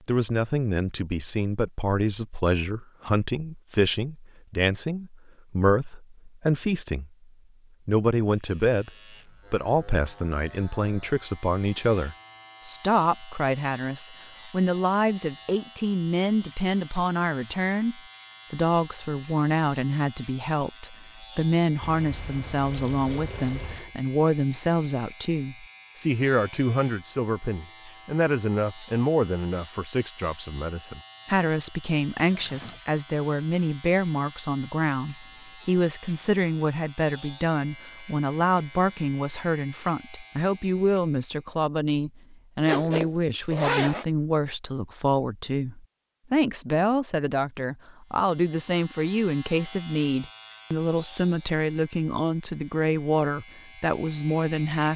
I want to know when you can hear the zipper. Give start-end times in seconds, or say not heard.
42.6-44.0.